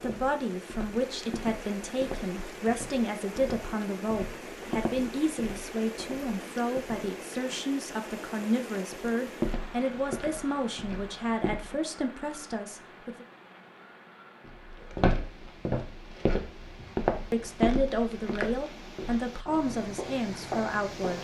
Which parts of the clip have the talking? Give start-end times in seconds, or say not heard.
0.0-13.2, 17.3-21.1.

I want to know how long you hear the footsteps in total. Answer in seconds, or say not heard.
16 s.